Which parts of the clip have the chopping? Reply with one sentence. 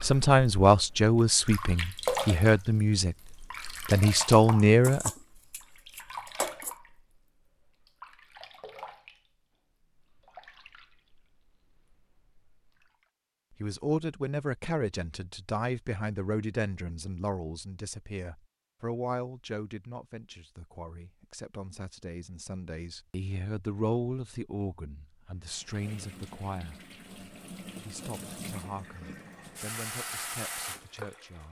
You can hear the chopping from 4.8 to 6.8 s.